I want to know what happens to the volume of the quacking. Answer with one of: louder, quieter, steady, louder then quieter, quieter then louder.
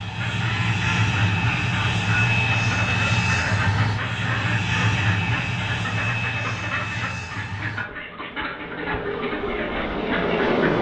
steady.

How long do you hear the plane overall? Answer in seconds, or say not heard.
11 s.